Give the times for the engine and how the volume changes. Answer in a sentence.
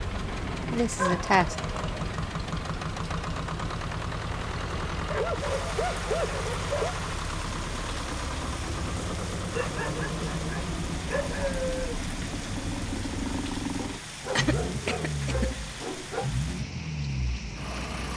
The engine can be heard from 0.0 to 18.1 s, at a steady volume.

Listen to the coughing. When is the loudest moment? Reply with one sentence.
The loudest moment of the coughing is at 1 second.